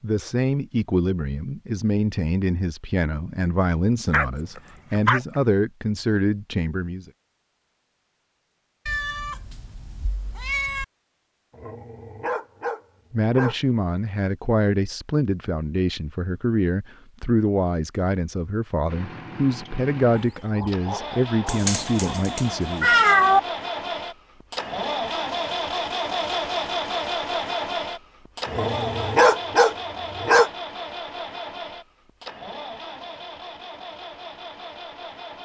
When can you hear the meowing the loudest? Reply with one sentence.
The volume of the meowing peaks at 23 seconds.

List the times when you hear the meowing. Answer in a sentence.
You can hear the meowing from 8.8 to 10.8 s and from 21.4 to 23.4 s.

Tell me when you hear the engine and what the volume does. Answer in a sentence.
You can hear the engine from 18.9 to 35.3 s, getting louder then quieter.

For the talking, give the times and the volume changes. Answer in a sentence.
You can hear the talking from 0.0 to 7.1 s, at a steady volume; and from 13.1 to 22.9 s, at a steady volume.